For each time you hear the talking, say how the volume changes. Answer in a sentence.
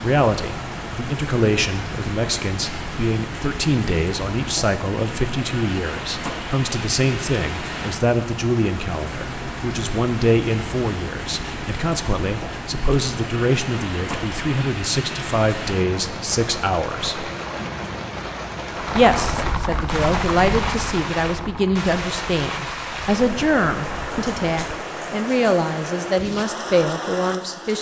You can hear the talking from 0.0 to 17.3 s, at a steady volume; and from 18.9 to 27.7 s, at a steady volume.